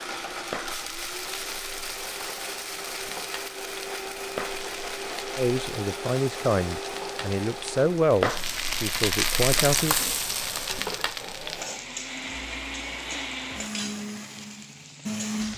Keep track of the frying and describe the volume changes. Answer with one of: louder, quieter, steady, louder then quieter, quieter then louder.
louder then quieter.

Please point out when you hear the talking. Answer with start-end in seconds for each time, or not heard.
5.3-9.9.